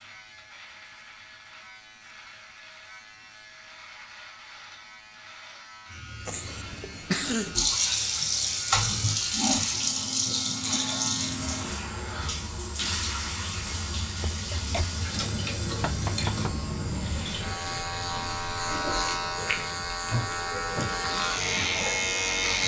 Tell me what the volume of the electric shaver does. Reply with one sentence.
The volume of the electric shaver goes up.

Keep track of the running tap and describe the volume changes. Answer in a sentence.
The loudness of the running tap goes down.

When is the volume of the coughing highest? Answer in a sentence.
The loudest moment of the coughing is at 7 seconds.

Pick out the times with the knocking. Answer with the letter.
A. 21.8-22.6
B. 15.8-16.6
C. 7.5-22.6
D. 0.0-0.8
B.